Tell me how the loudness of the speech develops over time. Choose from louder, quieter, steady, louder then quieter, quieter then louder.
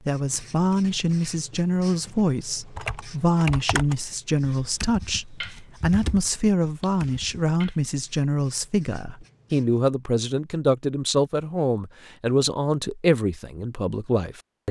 steady.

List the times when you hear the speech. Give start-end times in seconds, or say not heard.
0.1-14.6.